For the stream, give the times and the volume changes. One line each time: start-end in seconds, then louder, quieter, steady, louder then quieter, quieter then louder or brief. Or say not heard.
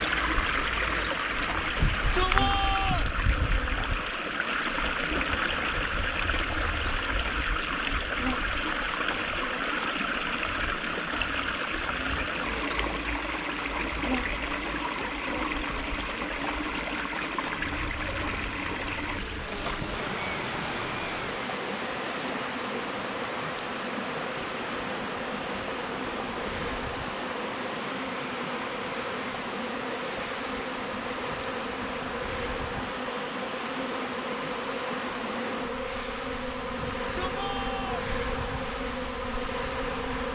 0.0-40.2 quieter.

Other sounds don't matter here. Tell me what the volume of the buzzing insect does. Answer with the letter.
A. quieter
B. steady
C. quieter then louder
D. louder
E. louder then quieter
D.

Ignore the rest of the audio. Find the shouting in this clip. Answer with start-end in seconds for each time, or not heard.
1.8-3.1, 36.8-38.1.